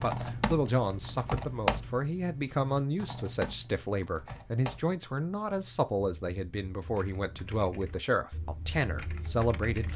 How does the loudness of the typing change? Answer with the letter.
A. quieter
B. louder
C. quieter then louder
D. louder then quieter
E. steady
C.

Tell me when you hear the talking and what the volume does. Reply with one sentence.
The talking can be heard from 0.0 to 9.9 s, at a steady volume.